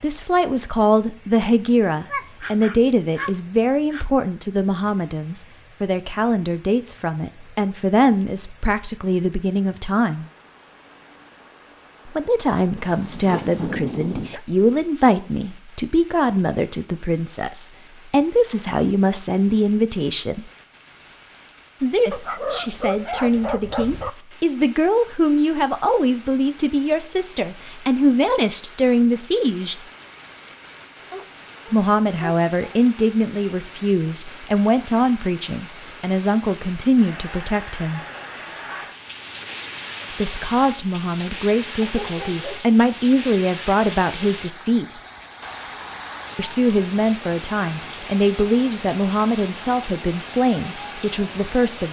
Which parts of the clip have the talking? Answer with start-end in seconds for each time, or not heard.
0.0-10.2, 12.1-20.4, 21.8-29.8, 31.7-38.0, 40.1-44.9, 46.4-51.8.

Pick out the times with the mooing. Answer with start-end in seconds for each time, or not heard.
not heard.